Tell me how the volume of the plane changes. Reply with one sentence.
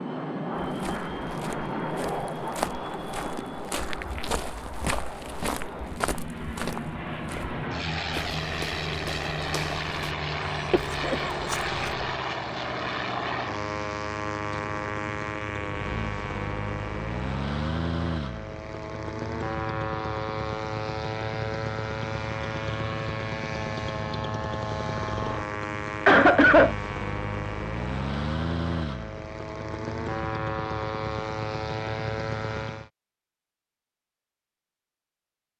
The volume of the plane stays about the same.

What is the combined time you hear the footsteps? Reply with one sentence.
You can hear the footsteps for 11 seconds altogether.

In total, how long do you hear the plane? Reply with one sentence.
The plane can be heard for 33 seconds in total.